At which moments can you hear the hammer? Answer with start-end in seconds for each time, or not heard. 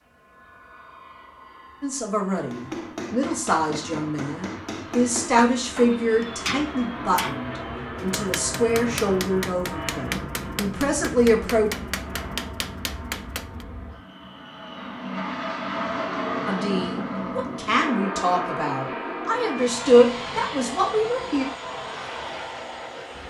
2.5-13.7.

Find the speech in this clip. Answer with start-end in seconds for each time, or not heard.
1.8-11.7, 16.4-21.4.